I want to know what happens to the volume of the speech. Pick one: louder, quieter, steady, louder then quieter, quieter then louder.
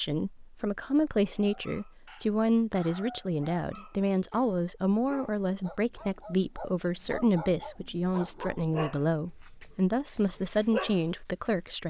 steady.